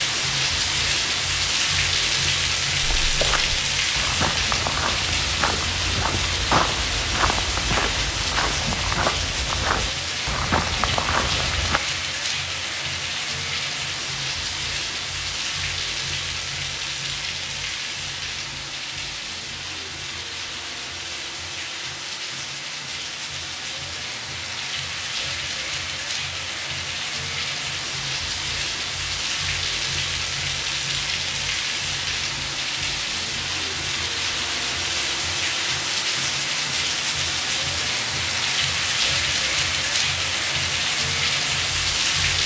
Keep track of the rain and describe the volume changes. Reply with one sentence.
The loudness of the rain goes down, then up.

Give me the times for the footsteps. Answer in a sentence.
The footsteps can be heard from 2.8 to 11.8 s.